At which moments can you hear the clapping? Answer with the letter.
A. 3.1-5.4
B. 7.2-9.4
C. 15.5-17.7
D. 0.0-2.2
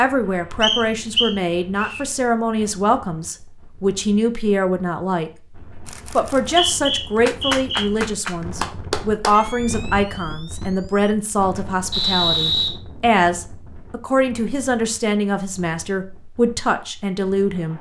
B.